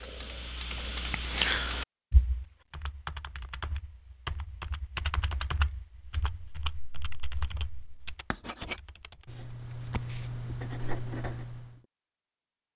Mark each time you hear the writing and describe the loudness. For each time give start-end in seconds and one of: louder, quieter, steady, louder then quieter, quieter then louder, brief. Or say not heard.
6.2-11.8 louder.